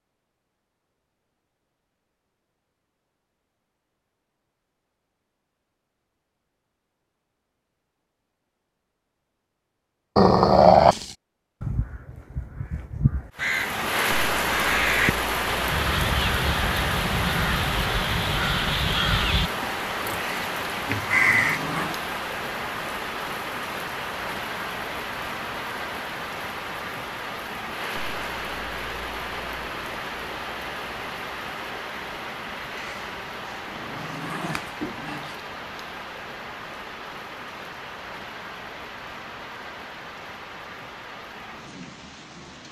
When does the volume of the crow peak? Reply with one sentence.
The volume of the crow peaks at 21 seconds.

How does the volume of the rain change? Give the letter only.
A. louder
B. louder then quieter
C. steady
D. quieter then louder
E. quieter
E.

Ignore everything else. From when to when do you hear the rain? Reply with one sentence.
The rain can be heard from 13.3 to 42.6 s.